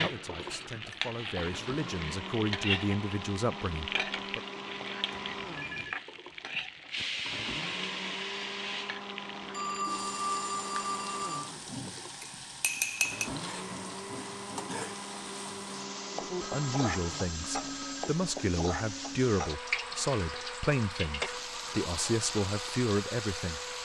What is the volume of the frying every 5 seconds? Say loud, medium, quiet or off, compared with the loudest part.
loud, loud, medium, loud, loud.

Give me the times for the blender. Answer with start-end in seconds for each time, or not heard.
0.2-23.8.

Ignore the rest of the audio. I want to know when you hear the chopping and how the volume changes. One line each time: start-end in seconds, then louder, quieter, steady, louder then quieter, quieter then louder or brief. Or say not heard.
not heard.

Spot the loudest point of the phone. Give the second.
10 s.